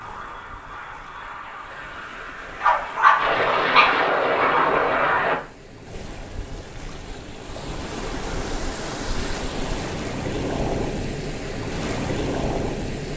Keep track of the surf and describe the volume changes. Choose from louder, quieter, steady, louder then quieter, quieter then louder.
louder.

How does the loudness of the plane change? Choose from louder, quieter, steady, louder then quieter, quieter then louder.
louder.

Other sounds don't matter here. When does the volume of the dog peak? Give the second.
3 s.